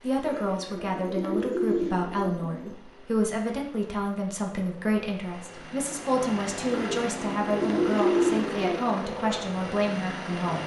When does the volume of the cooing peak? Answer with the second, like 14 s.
8 s.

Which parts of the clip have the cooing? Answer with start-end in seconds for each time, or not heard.
0.2-2.8, 6.7-8.9.